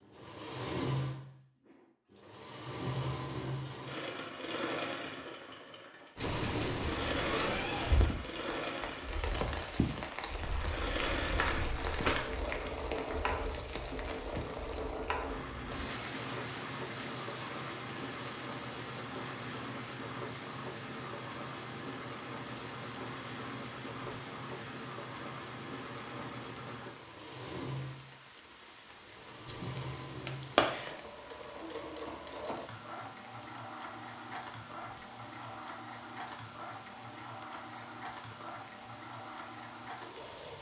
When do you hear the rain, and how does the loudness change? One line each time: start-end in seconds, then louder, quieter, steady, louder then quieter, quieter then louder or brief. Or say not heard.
6.2-40.5 quieter.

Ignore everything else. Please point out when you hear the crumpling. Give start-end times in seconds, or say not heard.
10.4-12.3, 29.4-31.0.